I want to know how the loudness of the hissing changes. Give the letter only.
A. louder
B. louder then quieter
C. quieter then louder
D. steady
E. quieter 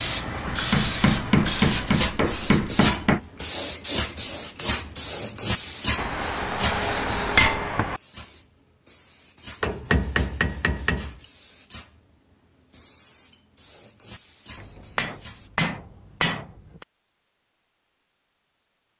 E.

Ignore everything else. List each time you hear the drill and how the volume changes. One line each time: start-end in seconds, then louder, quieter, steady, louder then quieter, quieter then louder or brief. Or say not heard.
not heard.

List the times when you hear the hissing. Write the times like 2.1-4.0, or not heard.
0.0-15.5.